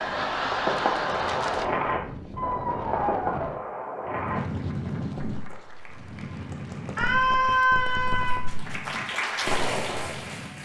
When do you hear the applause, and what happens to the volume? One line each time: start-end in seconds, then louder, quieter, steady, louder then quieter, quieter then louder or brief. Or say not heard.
0.0-1.6 brief
4.3-10.6 louder.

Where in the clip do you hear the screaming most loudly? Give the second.
8 s.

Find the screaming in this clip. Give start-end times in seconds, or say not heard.
2.4-3.5, 7.0-8.4.